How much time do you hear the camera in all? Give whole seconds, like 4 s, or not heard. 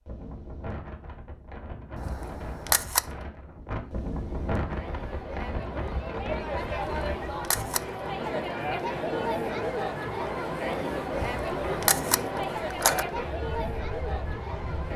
4 s.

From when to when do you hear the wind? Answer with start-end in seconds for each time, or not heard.
0.0-14.9.